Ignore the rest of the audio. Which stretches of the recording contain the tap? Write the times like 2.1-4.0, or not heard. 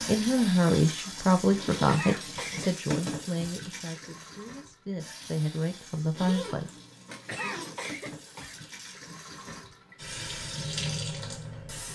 0.0-11.8.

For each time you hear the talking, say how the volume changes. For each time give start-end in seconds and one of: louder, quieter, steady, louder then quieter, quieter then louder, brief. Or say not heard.
0.0-6.7 quieter then louder.